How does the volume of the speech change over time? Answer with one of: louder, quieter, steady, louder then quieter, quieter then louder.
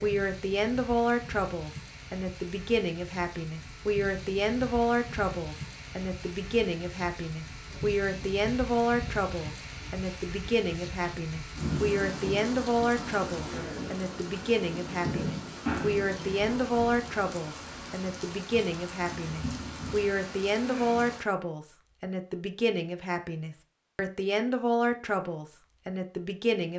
steady.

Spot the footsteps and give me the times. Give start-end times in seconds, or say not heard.
not heard.